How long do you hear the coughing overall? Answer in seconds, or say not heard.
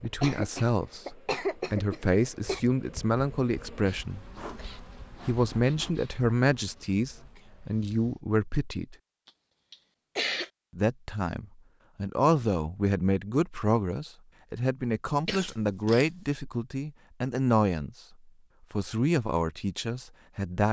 5 s.